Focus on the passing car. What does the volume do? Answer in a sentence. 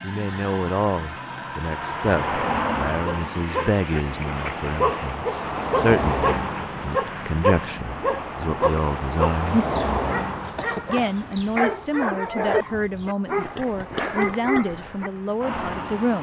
The loudness of the passing car goes down.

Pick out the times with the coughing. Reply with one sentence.
The coughing can be heard from 10.6 to 11.2 s.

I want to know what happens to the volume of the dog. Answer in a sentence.
The volume of the dog stays about the same.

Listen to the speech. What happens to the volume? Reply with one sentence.
The volume of the speech stays about the same.